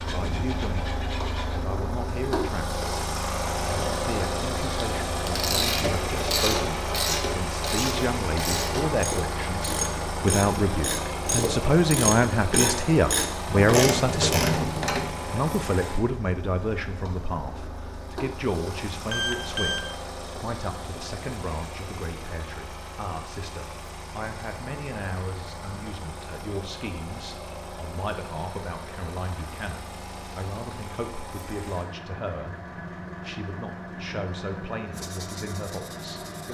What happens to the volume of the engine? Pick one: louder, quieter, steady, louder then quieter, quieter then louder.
quieter.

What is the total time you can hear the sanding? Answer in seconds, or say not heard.
3 s.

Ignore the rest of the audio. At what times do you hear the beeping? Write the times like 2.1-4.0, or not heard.
19.1-19.9.